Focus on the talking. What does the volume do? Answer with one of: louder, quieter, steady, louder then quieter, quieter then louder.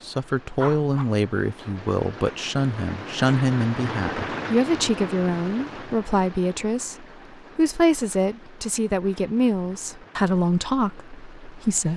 steady.